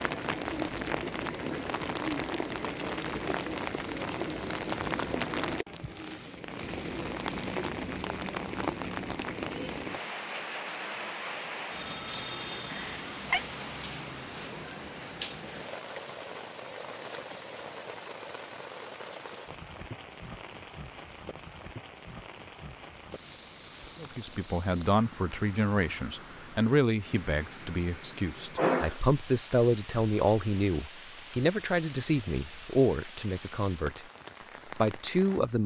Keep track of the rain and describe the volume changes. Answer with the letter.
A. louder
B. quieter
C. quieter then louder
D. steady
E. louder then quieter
B.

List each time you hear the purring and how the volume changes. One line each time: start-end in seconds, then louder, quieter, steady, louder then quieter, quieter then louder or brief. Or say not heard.
not heard.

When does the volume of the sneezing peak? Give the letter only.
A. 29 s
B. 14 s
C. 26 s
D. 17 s
A.